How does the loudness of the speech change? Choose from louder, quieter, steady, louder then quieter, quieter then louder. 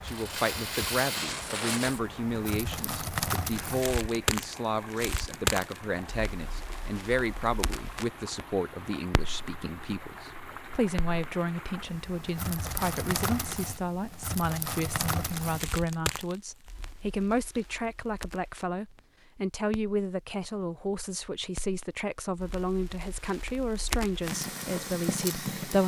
steady.